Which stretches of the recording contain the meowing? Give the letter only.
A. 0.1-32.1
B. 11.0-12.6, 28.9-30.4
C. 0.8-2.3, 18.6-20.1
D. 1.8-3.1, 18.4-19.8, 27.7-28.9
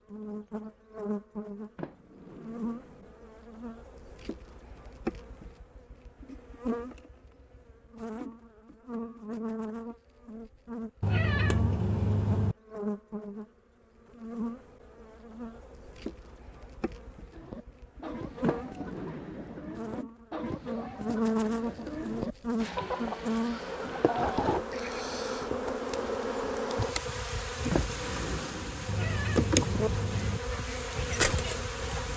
B.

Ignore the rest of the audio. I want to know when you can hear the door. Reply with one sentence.
The door can be heard from 1.8 to 3.1 s, from 18.4 to 19.8 s and from 27.7 to 28.9 s.